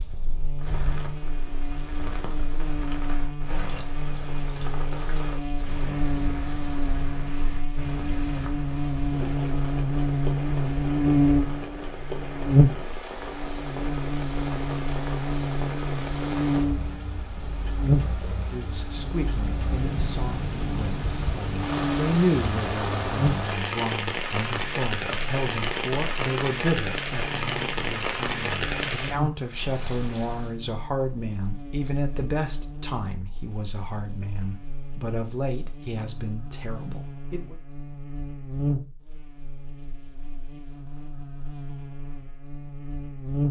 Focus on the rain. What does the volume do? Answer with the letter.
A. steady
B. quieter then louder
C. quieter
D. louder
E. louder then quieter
D.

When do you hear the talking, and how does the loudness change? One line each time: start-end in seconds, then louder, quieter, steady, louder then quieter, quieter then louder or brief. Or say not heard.
18.3-37.5 quieter.